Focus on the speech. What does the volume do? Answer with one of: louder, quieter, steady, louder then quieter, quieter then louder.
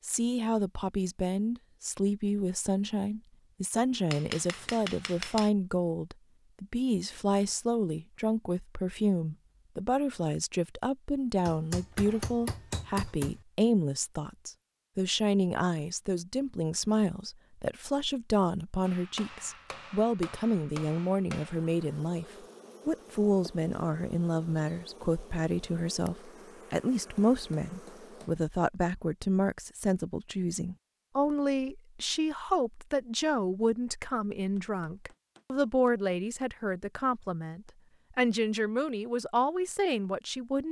steady.